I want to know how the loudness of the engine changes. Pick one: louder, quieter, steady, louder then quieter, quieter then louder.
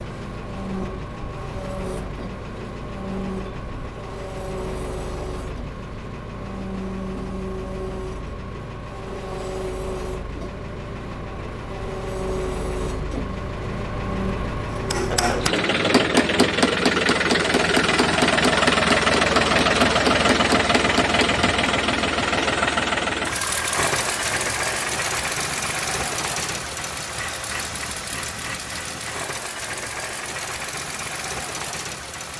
louder then quieter.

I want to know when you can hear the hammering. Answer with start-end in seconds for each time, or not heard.
14.7-21.6.